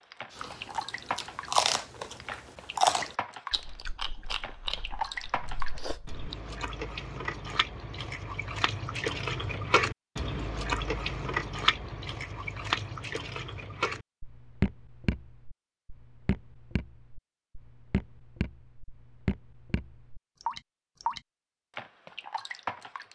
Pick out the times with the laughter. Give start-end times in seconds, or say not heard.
not heard.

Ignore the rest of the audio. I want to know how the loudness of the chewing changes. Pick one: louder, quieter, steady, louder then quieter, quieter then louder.
quieter.